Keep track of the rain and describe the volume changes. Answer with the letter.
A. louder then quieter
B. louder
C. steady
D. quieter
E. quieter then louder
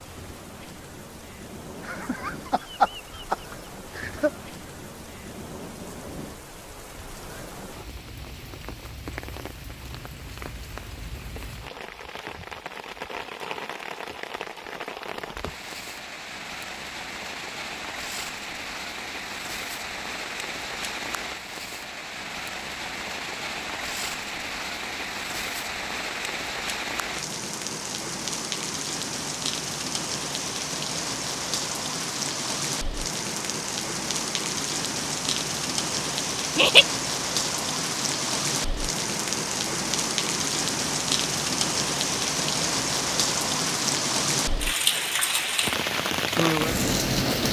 B.